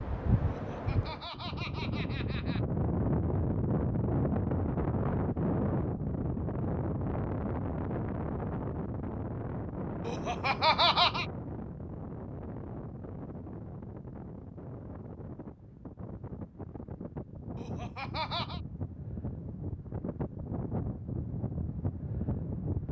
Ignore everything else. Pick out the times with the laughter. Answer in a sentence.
The laughter can be heard from 0.5 to 2.6 s, from 10.1 to 11.2 s and from 17.6 to 18.6 s.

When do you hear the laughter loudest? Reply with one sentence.
The volume of the laughter peaks at 11 seconds.